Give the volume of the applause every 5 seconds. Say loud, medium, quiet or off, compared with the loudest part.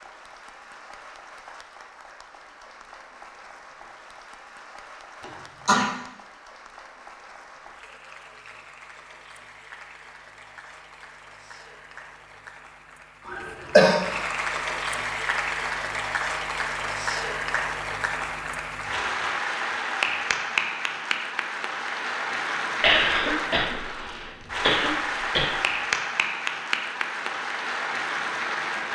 quiet, quiet, medium, loud, loud, loud.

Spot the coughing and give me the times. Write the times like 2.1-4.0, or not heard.
5.2-5.8, 13.2-14.1, 22.8-25.6.